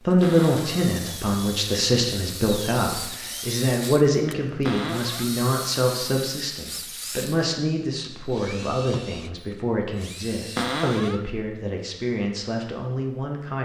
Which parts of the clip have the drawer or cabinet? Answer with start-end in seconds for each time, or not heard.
0.2-0.9, 4.6-5.3, 10.6-11.2.